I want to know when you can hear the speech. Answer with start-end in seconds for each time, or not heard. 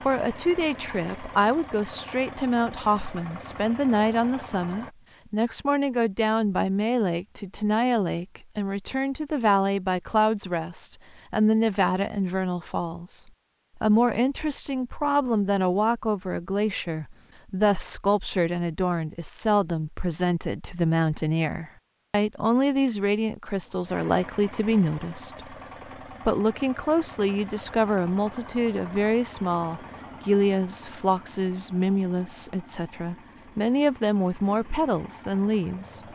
0.0-25.4, 26.2-36.0.